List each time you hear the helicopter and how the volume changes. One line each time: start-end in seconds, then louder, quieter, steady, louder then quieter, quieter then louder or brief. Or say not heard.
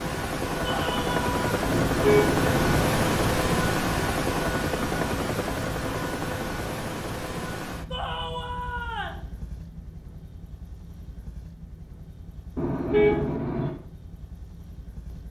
0.0-15.2 quieter.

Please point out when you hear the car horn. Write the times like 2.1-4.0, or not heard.
1.6-2.9, 12.6-13.7.